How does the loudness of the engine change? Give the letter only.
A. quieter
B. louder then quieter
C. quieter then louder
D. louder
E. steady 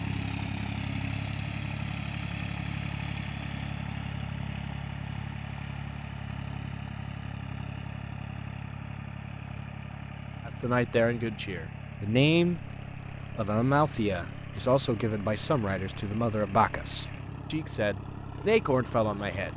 A.